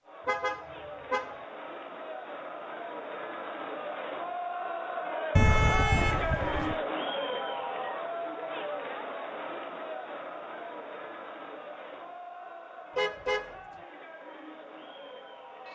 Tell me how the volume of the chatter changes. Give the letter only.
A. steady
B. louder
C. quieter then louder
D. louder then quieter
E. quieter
D.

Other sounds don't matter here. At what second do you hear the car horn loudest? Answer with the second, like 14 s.
6 s.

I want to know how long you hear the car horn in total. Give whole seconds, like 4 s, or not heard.
3 s.